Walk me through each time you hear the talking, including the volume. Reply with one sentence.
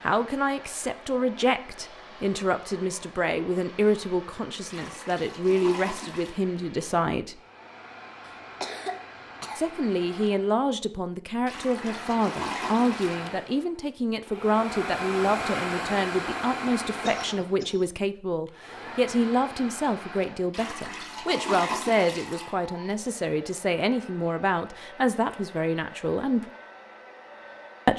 The talking can be heard from 0.0 to 7.3 s, at a steady volume; and from 9.6 to 26.4 s, at a steady volume.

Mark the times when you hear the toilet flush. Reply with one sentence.
The toilet flush can be heard from 4.7 to 6.4 s, from 11.4 to 13.2 s and from 20.5 to 22.6 s.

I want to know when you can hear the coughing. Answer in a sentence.
The coughing can be heard from 8.2 to 9.7 s and from 17.0 to 18.0 s.